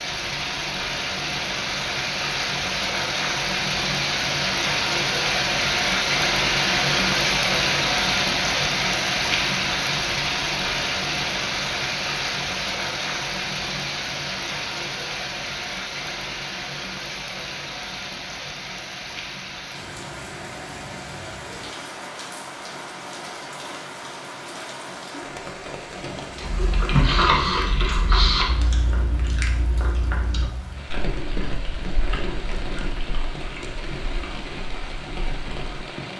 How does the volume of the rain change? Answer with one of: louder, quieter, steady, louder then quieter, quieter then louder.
quieter.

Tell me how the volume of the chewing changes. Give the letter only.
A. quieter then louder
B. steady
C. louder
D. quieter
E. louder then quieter
D.